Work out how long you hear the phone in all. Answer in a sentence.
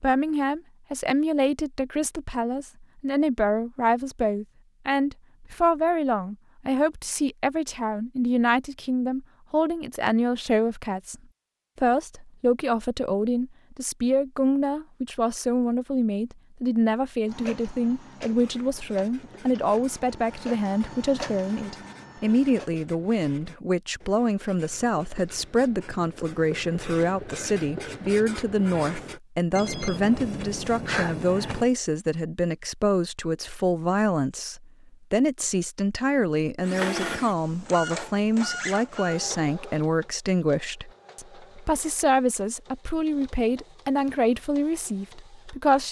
The phone can be heard for 2 seconds in total.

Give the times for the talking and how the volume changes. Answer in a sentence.
The talking can be heard from 0.0 to 11.2 s, at a steady volume; and from 11.8 to 45.8 s, at a steady volume.